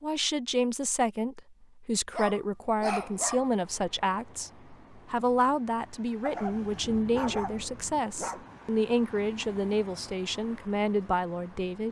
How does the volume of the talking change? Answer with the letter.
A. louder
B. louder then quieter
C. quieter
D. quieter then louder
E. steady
E.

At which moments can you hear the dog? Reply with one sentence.
The dog can be heard from 2.1 to 3.5 s and from 6.2 to 8.4 s.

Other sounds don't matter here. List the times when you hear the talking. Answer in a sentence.
The talking can be heard from 0.0 to 11.8 s.